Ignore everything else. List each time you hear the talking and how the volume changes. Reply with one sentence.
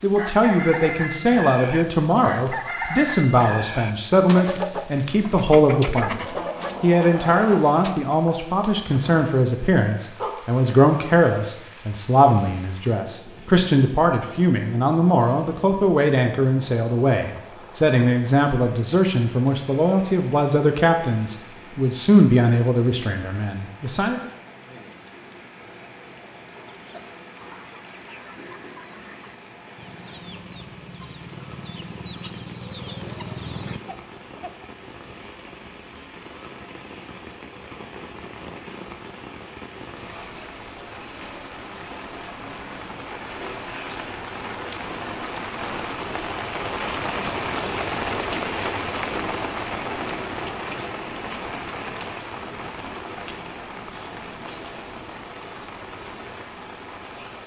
You can hear the talking from 0.0 to 24.2 s, at a steady volume.